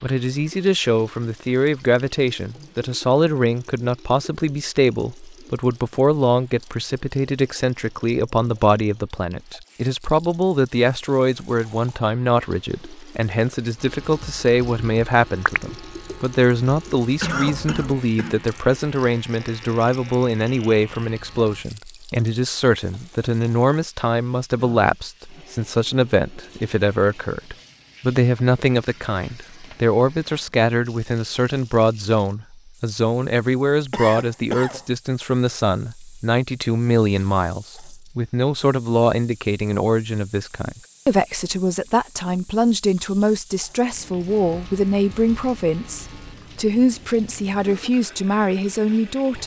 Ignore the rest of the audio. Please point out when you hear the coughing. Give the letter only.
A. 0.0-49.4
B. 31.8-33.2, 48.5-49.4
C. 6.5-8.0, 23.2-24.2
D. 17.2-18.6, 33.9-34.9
D.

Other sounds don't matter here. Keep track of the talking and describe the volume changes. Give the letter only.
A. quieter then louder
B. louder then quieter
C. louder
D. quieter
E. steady
E.